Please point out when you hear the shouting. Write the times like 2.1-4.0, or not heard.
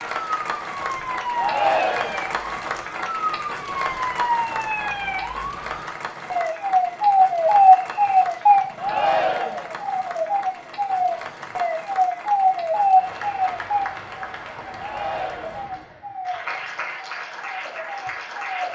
1.4-2.2, 8.8-9.7, 14.8-15.7.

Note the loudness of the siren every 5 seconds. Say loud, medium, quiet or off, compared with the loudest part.
medium, loud, loud, quiet.